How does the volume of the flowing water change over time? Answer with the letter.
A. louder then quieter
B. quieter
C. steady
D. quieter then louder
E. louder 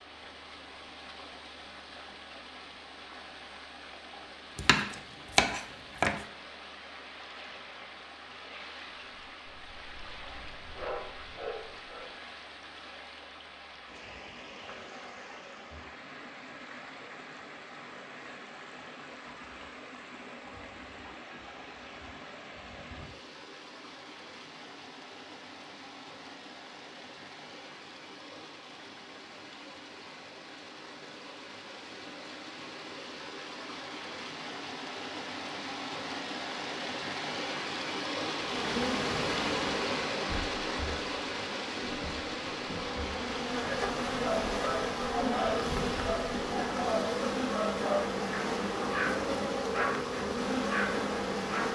E.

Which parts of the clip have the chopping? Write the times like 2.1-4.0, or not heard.
4.5-6.2.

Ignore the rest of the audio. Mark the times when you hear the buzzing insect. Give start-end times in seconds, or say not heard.
38.3-51.7.